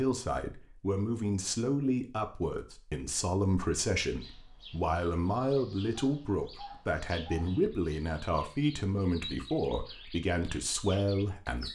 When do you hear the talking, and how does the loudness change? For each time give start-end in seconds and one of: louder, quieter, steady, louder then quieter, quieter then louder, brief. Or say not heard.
0.0-11.6 steady.